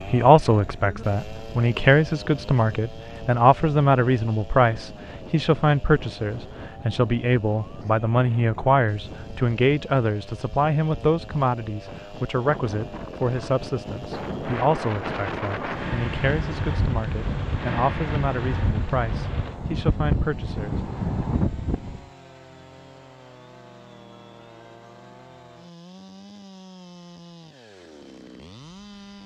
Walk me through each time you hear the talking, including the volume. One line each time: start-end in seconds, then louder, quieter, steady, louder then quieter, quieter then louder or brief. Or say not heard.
0.1-21.2 quieter.